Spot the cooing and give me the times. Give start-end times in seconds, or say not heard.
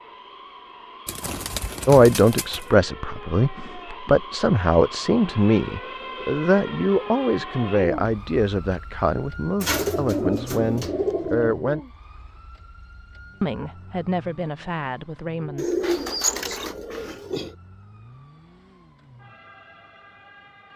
1.1-2.6, 9.6-11.6, 15.6-17.6.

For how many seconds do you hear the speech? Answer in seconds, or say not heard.
12 s.